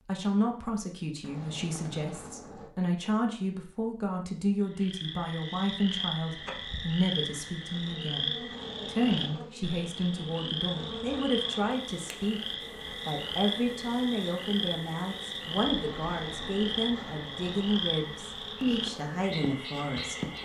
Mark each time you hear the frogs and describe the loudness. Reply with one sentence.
You can hear the frogs from 4.6 to 20.4 s, at a steady volume.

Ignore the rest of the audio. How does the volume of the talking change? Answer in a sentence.
The loudness of the talking stays about the same.